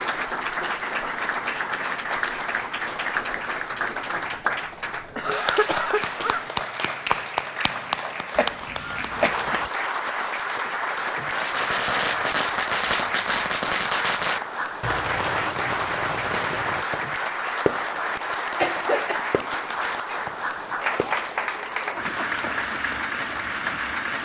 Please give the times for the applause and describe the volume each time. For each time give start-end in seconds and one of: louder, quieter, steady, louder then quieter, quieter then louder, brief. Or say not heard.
0.0-24.2 steady.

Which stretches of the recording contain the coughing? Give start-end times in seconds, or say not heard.
5.2-6.5, 8.3-9.7, 18.6-19.2.